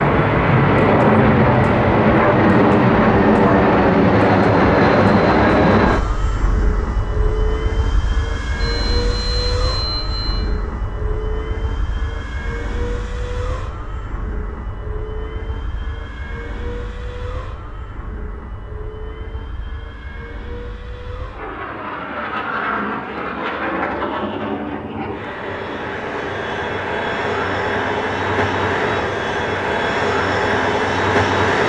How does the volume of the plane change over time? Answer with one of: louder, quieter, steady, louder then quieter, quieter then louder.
quieter then louder.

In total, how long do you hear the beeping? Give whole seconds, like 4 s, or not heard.
2 s.